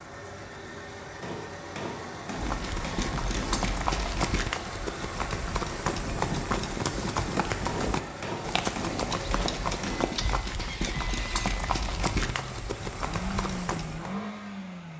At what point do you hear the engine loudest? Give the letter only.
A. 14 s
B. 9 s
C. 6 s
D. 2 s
A.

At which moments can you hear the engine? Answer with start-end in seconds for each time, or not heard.
0.0-14.9.